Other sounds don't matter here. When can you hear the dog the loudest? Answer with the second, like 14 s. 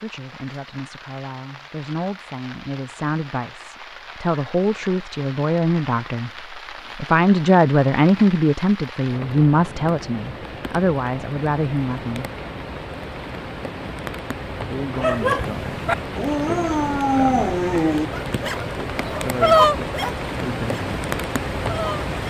20 s.